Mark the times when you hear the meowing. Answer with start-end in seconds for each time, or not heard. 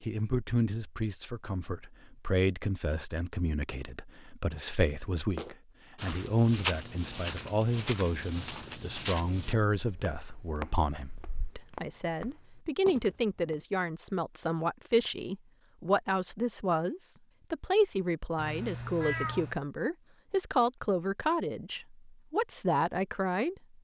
18.4-19.6.